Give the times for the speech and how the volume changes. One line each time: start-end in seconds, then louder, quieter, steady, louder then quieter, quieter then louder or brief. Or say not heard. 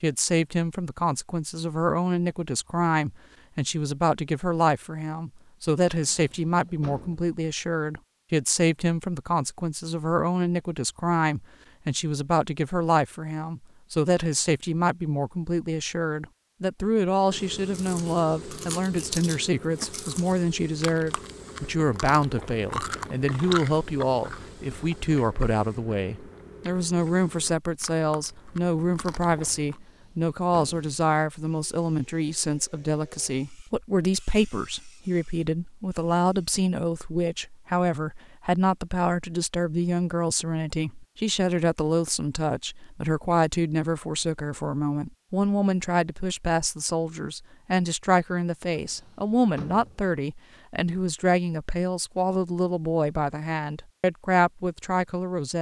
0.0-55.5 steady.